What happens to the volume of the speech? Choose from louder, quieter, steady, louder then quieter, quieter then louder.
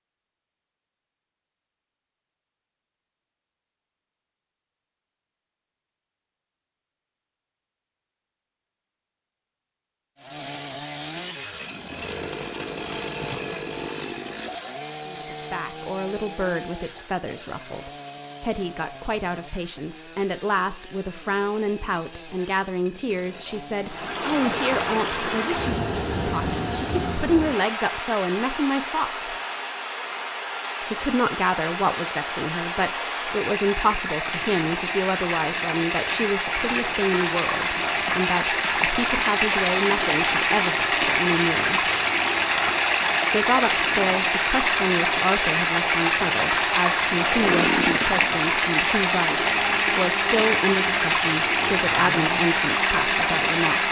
steady.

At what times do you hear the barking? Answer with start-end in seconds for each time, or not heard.
not heard.